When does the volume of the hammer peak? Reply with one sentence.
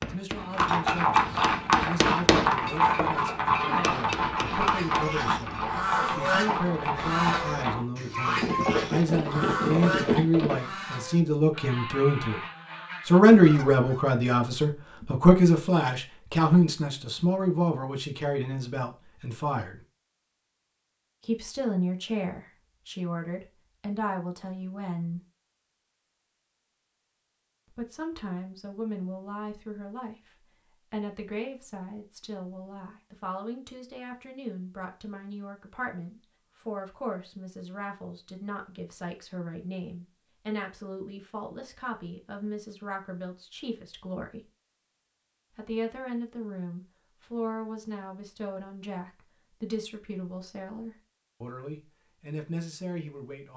The volume of the hammer peaks at 2 seconds.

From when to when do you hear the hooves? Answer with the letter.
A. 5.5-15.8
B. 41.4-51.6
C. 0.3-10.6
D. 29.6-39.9
C.